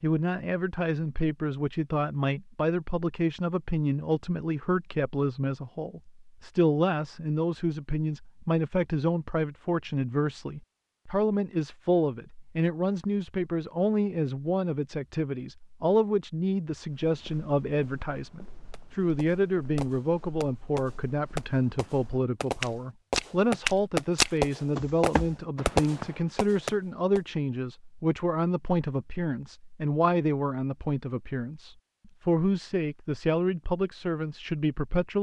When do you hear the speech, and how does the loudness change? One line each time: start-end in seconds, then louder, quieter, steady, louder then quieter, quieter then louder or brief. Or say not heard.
0.0-35.1 steady.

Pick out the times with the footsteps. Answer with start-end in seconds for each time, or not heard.
16.9-26.2.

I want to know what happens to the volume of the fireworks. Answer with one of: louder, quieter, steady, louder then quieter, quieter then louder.
louder.